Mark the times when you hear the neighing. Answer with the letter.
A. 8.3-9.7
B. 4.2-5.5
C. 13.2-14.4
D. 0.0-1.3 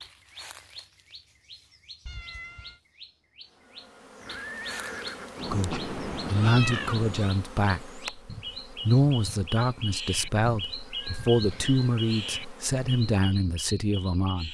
B.